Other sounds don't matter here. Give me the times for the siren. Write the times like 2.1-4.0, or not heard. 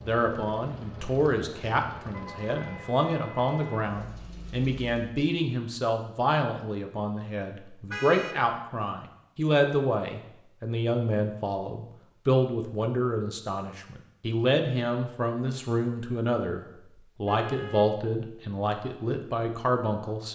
not heard.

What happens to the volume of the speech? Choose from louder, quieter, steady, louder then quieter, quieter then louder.
steady.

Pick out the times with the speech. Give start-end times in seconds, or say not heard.
0.0-20.2.